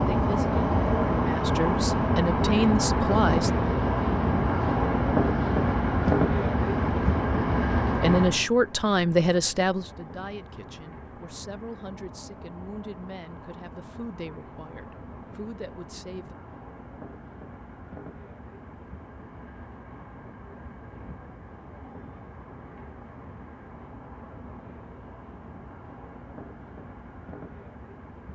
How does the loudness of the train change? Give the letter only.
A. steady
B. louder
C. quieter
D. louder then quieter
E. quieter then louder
C.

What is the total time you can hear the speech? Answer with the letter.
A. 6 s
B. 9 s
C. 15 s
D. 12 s
D.